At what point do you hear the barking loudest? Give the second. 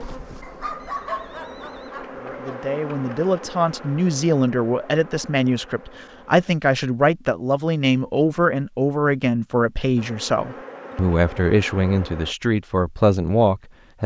1 s.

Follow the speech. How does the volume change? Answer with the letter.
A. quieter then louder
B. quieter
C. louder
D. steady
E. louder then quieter
D.